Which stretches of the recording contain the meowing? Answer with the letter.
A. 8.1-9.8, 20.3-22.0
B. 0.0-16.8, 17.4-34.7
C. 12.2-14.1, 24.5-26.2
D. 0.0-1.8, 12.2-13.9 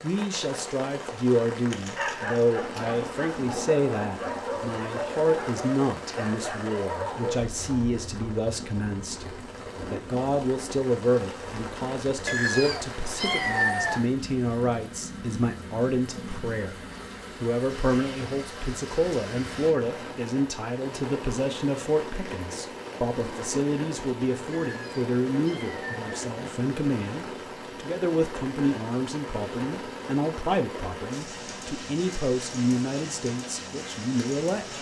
C.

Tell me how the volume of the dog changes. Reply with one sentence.
The loudness of the dog stays about the same.